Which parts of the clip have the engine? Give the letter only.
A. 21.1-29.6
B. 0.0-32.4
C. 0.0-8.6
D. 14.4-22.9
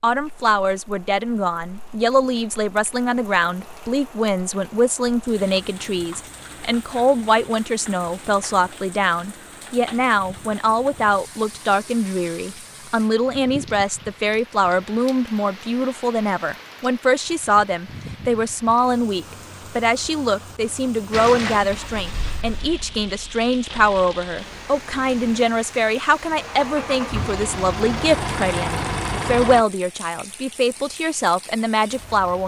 A.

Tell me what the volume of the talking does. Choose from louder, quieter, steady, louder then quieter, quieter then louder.
steady.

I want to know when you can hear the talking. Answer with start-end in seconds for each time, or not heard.
0.0-32.4.